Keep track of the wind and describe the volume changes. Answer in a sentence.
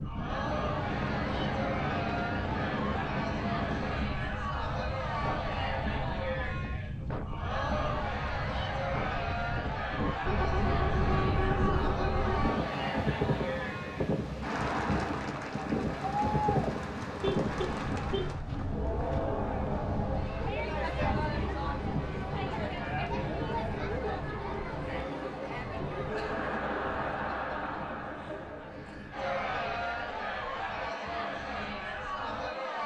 The loudness of the wind goes down.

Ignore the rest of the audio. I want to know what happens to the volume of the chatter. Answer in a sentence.
The loudness of the chatter stays about the same.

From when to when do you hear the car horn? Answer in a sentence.
The car horn can be heard from 10.2 to 12.6 s and from 17.2 to 18.3 s.